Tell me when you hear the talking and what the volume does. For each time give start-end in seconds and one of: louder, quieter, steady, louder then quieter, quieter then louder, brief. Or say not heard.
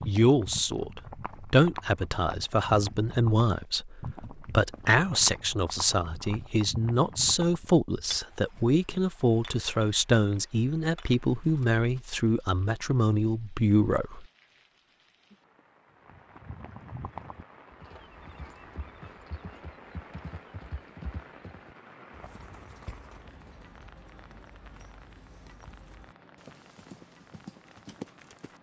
0.1-14.2 steady.